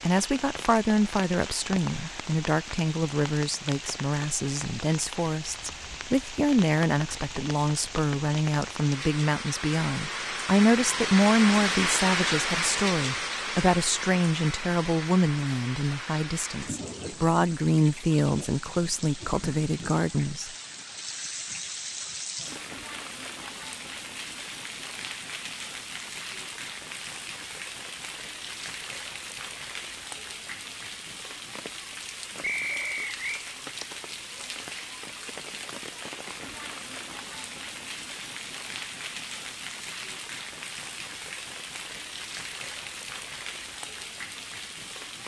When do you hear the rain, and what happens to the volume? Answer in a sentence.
You can hear the rain from 0.0 to 45.2 s, getting louder then quieter.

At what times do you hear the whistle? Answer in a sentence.
The whistle can be heard from 32.4 to 33.5 s.